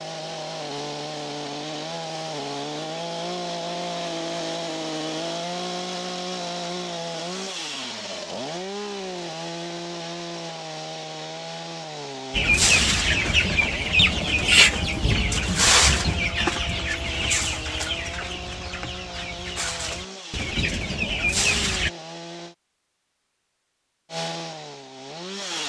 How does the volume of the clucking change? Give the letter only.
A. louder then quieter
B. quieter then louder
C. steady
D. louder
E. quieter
B.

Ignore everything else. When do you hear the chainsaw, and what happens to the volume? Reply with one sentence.
You can hear the chainsaw from 0.0 to 22.6 s, getting quieter; and briefly from 24.1 to 25.6 s.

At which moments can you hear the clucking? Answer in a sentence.
You can hear the clucking from 12.3 to 21.9 s.